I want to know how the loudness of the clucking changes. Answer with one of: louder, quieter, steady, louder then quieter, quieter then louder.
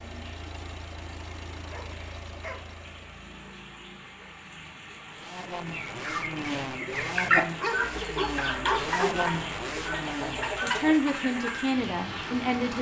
louder then quieter.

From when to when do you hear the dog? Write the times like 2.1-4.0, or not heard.
1.7-2.8, 7.6-9.2.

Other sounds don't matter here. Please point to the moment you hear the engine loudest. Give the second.
9 s.